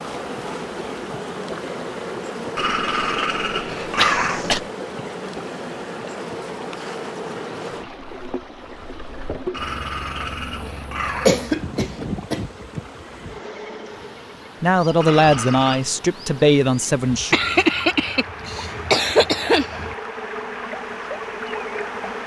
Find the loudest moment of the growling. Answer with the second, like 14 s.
4 s.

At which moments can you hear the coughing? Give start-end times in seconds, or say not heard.
4.0-4.6, 11.2-12.4, 17.3-19.9.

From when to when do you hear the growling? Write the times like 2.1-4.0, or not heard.
2.5-4.7, 9.5-11.4, 15.0-15.8.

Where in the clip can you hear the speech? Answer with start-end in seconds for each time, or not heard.
14.6-17.4.